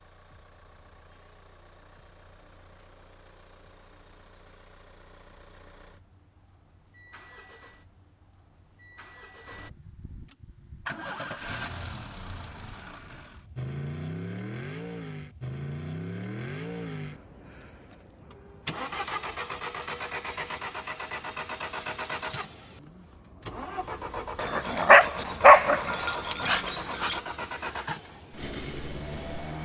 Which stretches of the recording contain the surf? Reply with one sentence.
The surf can't be heard in this clip.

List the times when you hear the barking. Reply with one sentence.
The barking can be heard from 24.4 to 27.2 s.